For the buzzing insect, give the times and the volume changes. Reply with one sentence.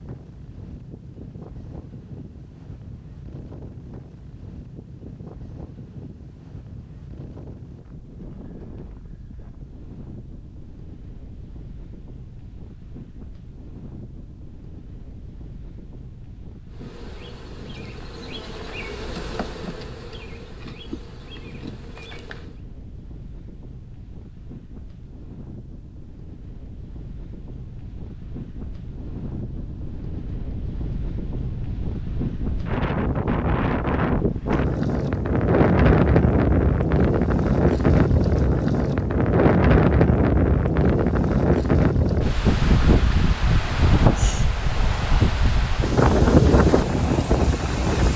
The buzzing insect can be heard from 16.7 to 22.6 s, getting louder then quieter.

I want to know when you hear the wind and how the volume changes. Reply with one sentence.
The wind can be heard from 0.0 to 48.1 s, getting louder.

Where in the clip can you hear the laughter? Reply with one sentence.
The laughter can't be heard in this clip.